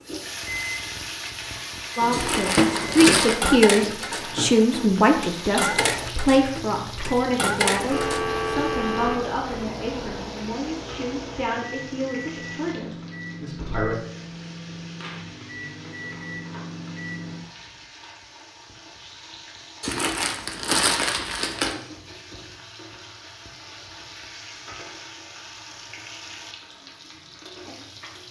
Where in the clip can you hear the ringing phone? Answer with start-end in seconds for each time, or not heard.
7.9-9.2.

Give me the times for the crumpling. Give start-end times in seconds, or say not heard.
2.1-3.4, 19.8-21.8.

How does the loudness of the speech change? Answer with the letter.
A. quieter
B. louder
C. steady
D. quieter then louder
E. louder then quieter
A.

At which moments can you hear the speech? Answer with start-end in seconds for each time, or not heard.
1.9-13.9.